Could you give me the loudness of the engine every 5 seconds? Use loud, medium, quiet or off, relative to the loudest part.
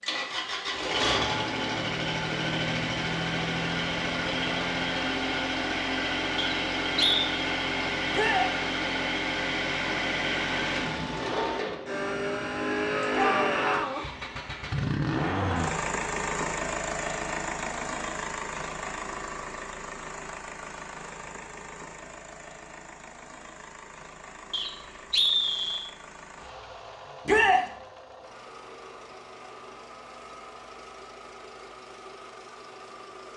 loud, loud, loud, loud, quiet, quiet, quiet.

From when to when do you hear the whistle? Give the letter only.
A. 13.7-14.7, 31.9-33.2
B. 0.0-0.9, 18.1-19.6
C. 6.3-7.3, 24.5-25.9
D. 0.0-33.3
C.